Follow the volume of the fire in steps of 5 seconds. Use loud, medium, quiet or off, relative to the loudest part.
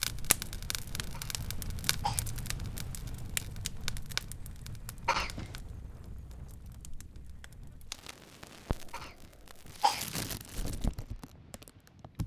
loud, medium, loud.